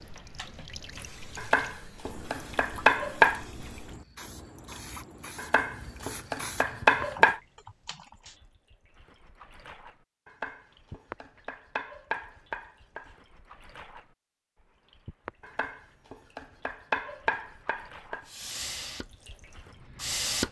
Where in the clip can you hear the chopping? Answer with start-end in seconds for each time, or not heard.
1.4-3.4, 5.3-7.4, 10.2-13.2, 15.4-18.2.